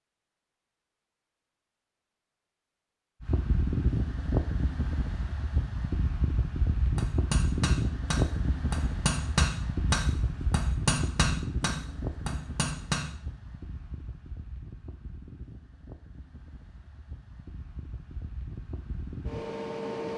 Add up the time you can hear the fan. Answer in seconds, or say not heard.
17 s.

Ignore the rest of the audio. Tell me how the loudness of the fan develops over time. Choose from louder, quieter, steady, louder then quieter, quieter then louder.
quieter then louder.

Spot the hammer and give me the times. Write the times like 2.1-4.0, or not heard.
6.8-13.2.